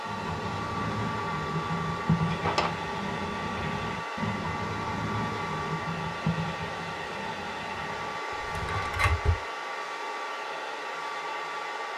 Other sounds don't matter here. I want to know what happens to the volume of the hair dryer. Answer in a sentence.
The volume of the hair dryer stays about the same.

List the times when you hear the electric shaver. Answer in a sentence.
You can't hear the electric shaver here.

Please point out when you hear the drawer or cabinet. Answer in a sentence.
The drawer or cabinet can be heard from 2.2 to 2.8 s and from 8.3 to 9.4 s.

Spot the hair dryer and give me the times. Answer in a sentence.
You can hear the hair dryer from 0.0 to 11.9 s.